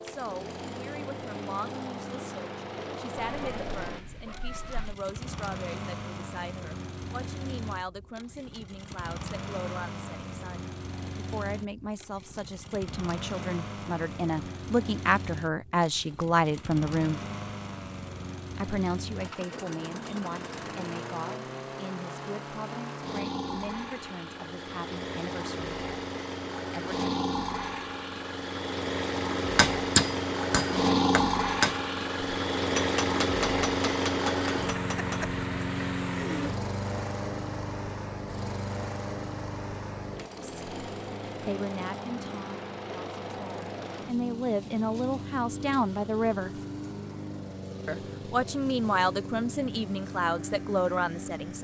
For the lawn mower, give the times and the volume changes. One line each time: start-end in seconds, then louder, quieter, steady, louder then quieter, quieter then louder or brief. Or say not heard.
0.0-51.5 louder then quieter.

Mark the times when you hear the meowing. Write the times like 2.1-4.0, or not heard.
3.1-5.0.